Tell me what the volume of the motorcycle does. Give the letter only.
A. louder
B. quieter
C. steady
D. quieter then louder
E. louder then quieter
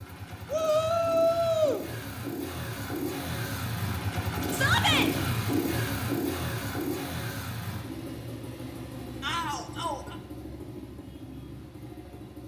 E.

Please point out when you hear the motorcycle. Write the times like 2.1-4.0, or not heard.
0.0-12.4.